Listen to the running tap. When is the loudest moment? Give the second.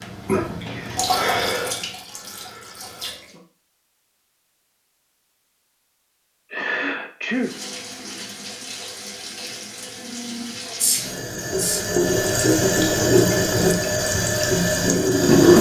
15 s.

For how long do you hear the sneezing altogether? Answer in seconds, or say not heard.
3 s.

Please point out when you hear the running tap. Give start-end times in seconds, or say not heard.
0.0-3.4, 7.3-15.5.